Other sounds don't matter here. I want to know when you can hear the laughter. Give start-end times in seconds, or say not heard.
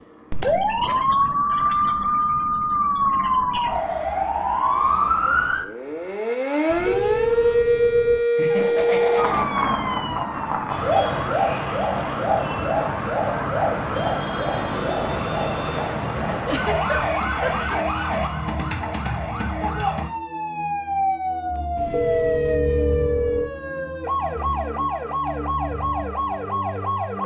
8.3-9.5, 16.4-17.8.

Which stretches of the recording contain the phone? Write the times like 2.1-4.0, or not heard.
6.7-8.2, 21.8-23.5.